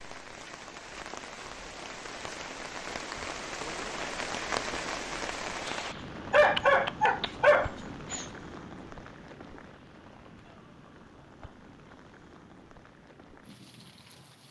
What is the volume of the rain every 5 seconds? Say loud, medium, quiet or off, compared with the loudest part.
loud, loud, quiet.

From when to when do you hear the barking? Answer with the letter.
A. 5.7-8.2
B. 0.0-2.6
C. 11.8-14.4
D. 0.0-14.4
A.